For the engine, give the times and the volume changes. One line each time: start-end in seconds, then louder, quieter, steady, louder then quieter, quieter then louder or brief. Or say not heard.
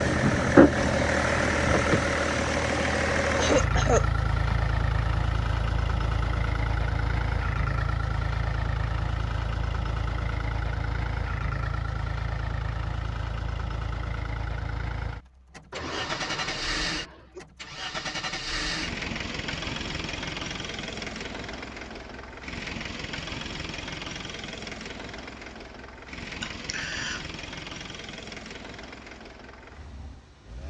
0.0-30.6 quieter.